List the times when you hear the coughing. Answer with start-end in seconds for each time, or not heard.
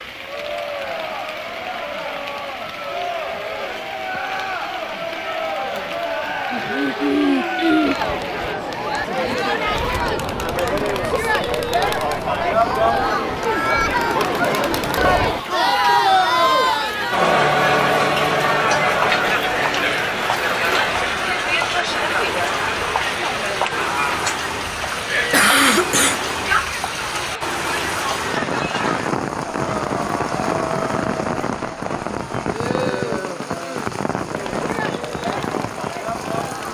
6.5-8.0, 25.3-26.2.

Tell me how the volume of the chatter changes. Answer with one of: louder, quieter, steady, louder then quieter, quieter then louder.
louder then quieter.